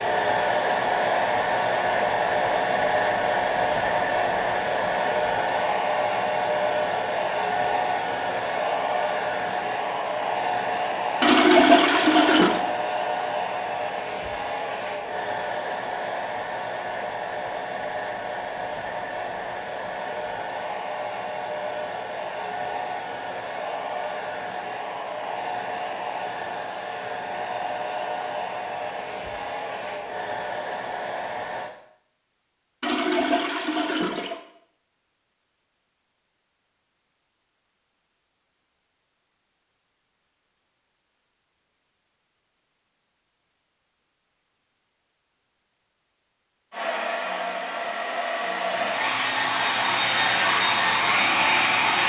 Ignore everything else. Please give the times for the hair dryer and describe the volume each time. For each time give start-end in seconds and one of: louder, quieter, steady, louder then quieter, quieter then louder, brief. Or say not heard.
0.0-31.7 quieter
46.7-52.0 louder.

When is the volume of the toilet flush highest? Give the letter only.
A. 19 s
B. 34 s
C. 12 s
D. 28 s
C.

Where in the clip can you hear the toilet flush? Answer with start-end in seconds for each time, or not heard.
11.2-12.6, 32.8-34.4.